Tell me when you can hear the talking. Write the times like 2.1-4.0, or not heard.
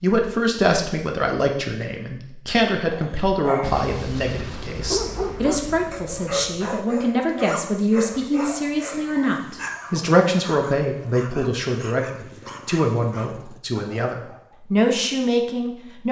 0.0-16.0.